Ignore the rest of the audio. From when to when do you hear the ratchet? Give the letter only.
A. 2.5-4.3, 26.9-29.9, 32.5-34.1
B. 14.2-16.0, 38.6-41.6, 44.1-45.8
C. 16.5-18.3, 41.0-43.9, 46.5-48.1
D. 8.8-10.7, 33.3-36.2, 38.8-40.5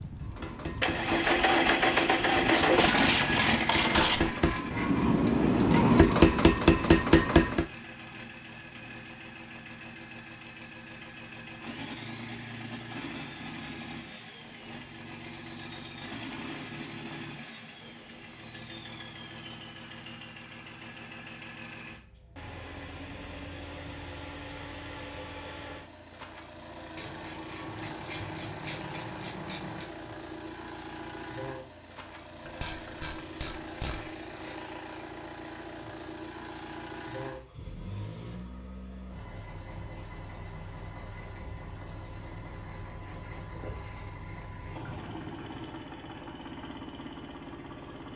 A.